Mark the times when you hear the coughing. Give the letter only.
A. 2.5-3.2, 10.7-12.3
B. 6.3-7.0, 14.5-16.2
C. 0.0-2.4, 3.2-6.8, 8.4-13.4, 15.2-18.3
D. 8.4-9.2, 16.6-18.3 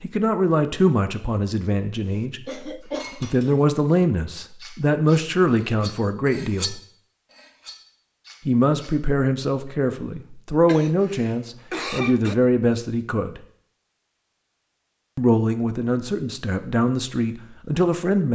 A.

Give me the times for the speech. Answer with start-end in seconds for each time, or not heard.
0.0-2.4, 3.2-6.8, 8.4-13.4, 15.2-18.3.